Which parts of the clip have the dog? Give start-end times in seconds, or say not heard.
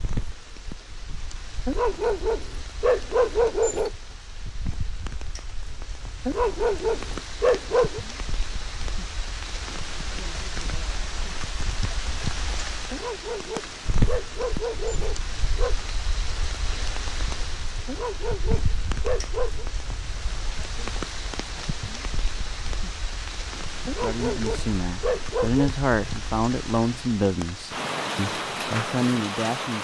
1.6-3.9, 6.2-8.0, 12.9-15.8, 17.9-19.6, 23.9-25.6.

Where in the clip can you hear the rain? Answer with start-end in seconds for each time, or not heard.
0.0-29.7.